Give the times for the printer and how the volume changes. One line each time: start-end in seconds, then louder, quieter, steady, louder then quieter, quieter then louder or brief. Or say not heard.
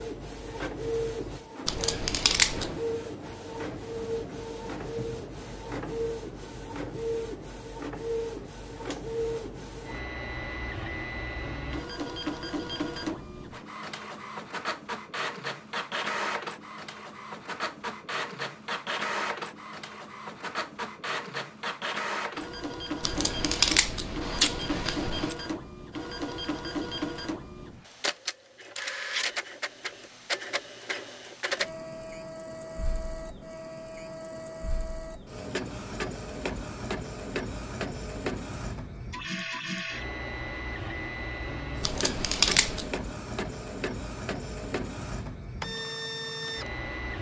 0.0-47.1 steady.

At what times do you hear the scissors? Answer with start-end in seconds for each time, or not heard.
1.6-2.7, 23.0-25.4, 41.8-42.9.